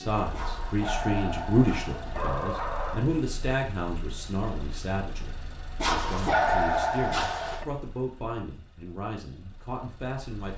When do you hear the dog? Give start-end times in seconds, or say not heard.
0.3-3.0, 5.8-7.7.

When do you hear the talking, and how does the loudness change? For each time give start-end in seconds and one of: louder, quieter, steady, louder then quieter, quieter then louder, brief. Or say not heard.
0.0-10.5 quieter.